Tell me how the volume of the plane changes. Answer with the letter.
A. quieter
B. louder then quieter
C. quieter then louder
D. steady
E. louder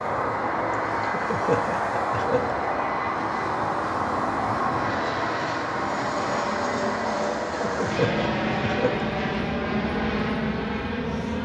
D.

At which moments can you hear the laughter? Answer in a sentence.
You can hear the laughter from 1.0 to 2.5 s and from 7.6 to 8.9 s.